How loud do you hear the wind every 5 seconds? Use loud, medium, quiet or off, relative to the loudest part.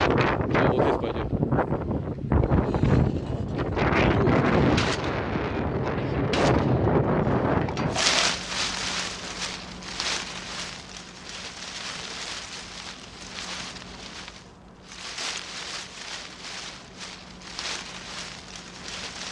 loud, loud, quiet, quiet.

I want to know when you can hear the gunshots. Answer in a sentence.
The gunshots can be heard from 4.8 to 8.3 s.